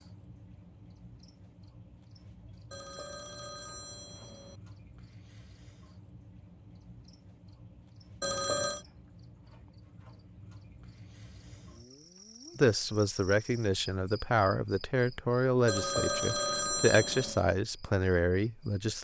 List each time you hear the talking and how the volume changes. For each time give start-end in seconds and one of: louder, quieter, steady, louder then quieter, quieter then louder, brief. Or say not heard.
12.6-18.9 steady.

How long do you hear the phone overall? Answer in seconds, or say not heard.
4 s.